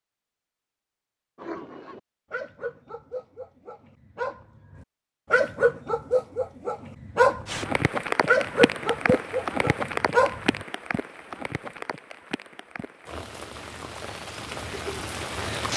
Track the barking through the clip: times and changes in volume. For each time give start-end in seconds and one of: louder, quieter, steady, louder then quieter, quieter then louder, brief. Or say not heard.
1.4-10.7 louder.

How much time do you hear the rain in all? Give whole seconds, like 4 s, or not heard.
8 s.